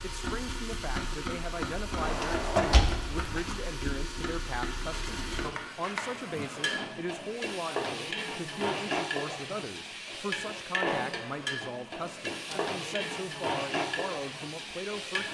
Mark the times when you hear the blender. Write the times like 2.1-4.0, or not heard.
not heard.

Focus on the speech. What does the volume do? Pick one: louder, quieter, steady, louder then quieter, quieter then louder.
steady.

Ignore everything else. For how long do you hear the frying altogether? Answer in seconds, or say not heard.
15 s.